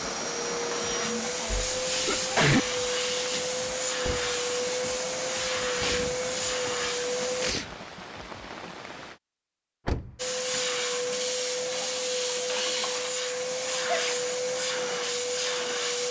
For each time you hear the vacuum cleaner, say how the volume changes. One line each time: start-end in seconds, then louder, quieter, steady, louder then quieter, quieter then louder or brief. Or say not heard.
0.0-7.5 steady
10.2-16.0 steady.